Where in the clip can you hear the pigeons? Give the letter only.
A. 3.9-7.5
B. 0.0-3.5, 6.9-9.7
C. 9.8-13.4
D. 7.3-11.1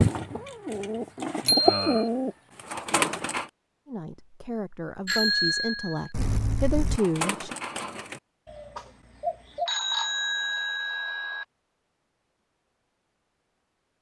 B.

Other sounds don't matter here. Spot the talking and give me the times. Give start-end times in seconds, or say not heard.
3.9-7.5.